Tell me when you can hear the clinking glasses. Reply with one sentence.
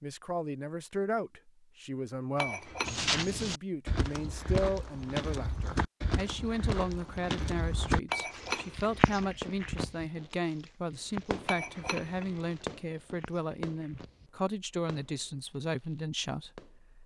The clinking glasses can be heard from 2.4 to 3.0 s, from 8.1 to 9.2 s and from 11.4 to 12.7 s.